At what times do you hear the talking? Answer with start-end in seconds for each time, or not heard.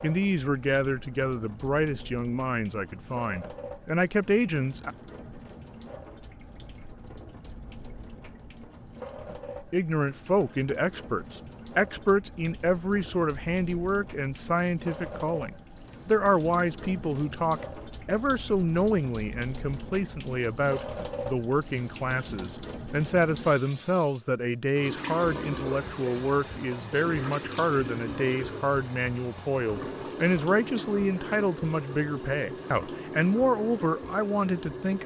0.0-5.0, 9.7-35.0.